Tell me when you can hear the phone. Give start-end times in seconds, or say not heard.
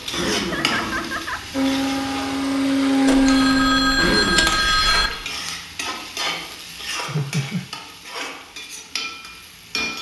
3.0-5.1.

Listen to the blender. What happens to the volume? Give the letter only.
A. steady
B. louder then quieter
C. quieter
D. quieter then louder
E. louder
E.